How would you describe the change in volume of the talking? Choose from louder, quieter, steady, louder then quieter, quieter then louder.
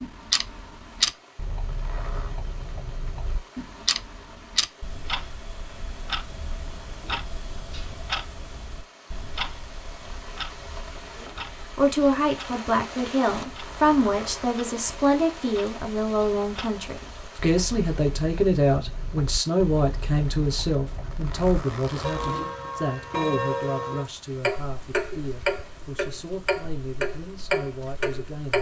quieter.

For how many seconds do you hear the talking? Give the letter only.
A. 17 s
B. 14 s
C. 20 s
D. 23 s
A.